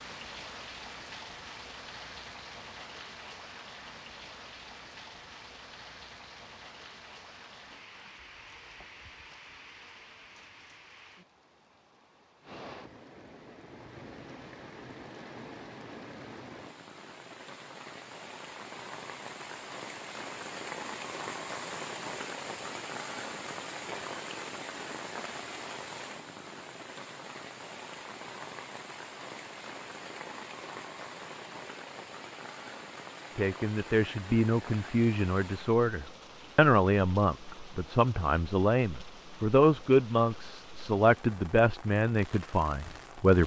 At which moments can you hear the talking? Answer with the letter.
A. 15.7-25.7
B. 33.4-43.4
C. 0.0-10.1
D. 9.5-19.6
B.